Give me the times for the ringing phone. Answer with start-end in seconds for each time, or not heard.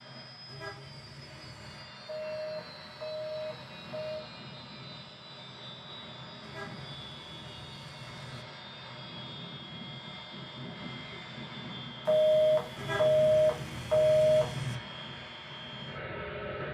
2.0-4.2, 12.1-14.4.